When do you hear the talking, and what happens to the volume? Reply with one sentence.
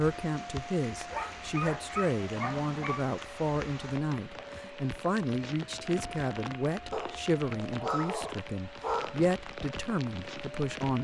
You can hear the talking from 0.0 to 10.9 s, at a steady volume.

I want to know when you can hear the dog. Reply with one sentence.
The dog can be heard from 1.1 to 3.1 s and from 6.9 to 9.2 s.